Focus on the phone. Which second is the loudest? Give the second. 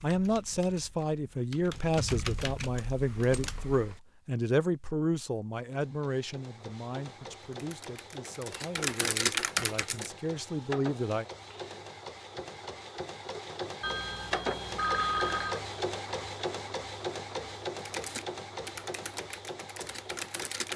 15 s.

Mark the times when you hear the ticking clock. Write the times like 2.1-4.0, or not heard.
not heard.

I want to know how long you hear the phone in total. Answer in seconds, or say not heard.
2 s.